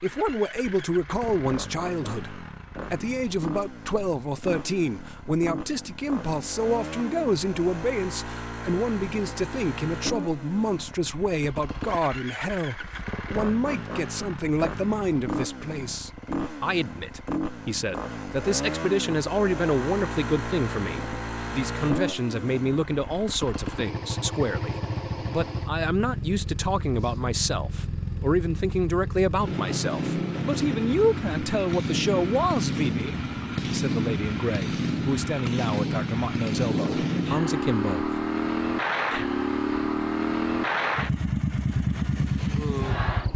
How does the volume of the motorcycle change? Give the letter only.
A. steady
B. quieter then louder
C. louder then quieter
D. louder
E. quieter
D.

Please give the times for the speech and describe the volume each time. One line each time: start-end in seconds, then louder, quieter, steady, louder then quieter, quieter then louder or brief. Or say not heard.
0.0-38.2 steady.